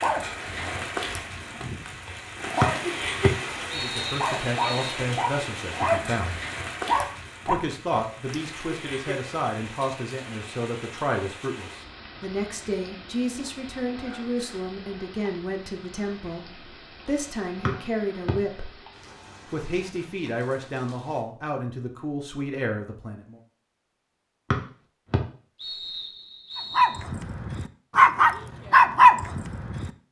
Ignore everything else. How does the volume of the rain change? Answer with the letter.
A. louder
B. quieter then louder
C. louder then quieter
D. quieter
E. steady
D.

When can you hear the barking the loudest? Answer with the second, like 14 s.
29 s.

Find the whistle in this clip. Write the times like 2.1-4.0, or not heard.
2.6-5.0, 17.6-18.4, 24.5-27.0.